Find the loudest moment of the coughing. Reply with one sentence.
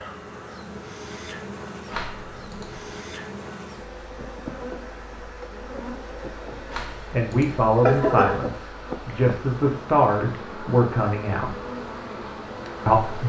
The loudest moment of the coughing is at 8 seconds.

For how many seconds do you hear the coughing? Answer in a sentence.
You can hear the coughing for 3 seconds altogether.